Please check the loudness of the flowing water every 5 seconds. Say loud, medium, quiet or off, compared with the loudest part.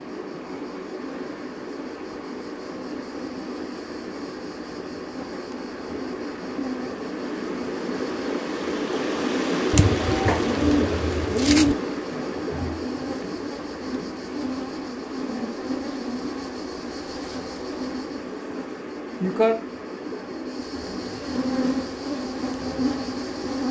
medium, loud, loud, medium, medium.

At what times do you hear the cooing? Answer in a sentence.
You can hear the cooing from 9.7 to 11.8 s.